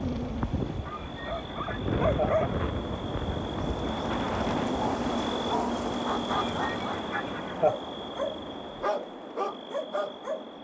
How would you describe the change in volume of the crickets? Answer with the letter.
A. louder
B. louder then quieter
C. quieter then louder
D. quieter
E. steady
B.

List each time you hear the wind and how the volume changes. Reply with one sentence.
The wind can be heard from 0.0 to 8.9 s, getting quieter.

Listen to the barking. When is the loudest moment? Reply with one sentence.
The volume of the barking peaks at 2 seconds.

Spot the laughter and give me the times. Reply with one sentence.
You can hear the laughter from 0.8 to 2.5 s and from 6.2 to 7.8 s.